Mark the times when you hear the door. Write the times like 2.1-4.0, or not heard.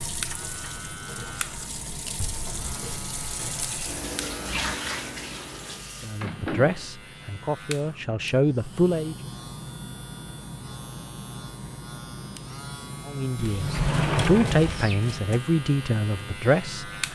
2.1-2.9, 6.2-6.9, 13.3-15.4.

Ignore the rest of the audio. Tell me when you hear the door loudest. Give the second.
14 s.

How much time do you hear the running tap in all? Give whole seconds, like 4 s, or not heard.
6 s.